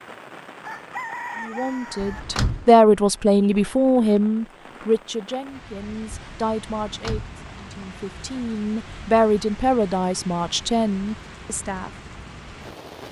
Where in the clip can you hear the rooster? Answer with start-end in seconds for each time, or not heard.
0.6-2.2.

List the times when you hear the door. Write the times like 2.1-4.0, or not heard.
1.9-2.6, 6.8-7.3.